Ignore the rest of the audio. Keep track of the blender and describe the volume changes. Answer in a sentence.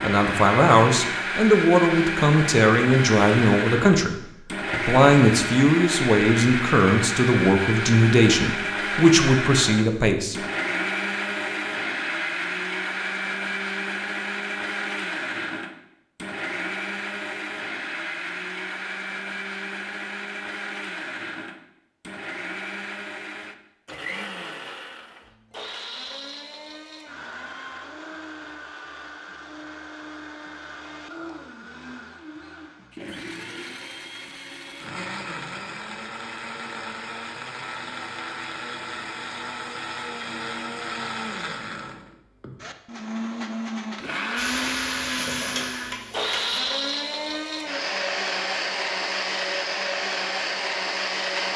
The loudness of the blender goes down, then up.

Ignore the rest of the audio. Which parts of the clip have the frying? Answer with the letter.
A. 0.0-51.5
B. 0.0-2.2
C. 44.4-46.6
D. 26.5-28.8
C.